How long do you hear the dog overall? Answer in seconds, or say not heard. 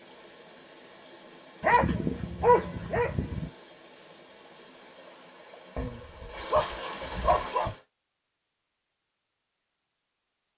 4 s.